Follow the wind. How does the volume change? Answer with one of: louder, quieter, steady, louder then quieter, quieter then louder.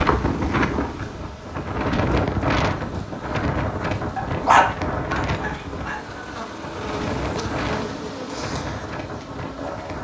quieter.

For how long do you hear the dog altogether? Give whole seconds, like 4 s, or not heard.
2 s.